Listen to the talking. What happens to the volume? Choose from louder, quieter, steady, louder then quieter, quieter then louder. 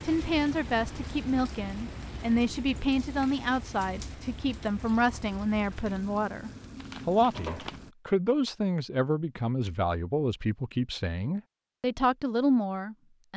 steady.